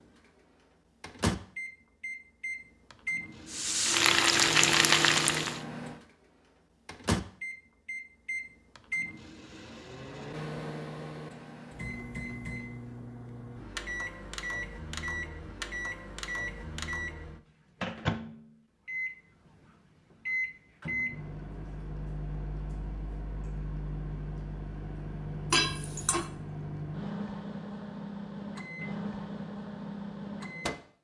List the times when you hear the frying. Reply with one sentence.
The frying can be heard from 3.5 to 5.6 s.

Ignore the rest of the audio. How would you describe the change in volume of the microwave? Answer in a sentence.
The volume of the microwave stays about the same.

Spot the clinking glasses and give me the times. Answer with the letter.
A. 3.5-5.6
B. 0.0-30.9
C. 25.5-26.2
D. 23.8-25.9
C.